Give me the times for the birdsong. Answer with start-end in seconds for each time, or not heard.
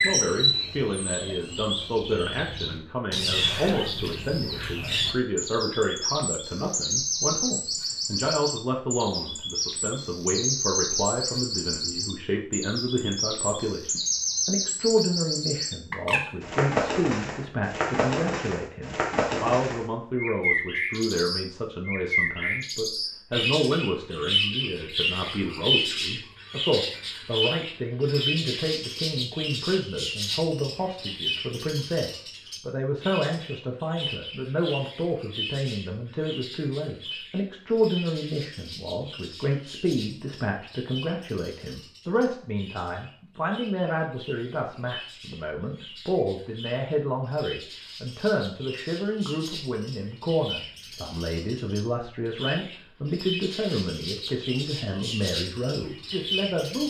0.0-56.8.